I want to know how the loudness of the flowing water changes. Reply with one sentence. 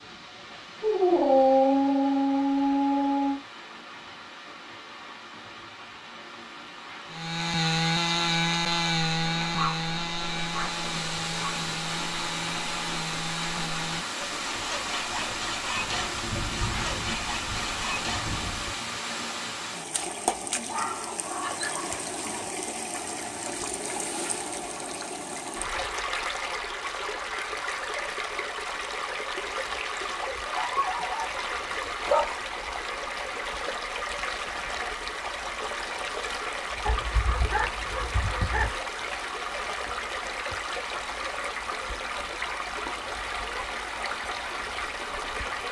The loudness of the flowing water goes up.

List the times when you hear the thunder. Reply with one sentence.
You can hear the thunder from 15.8 to 18.8 s.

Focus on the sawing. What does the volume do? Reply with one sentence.
The loudness of the sawing goes down.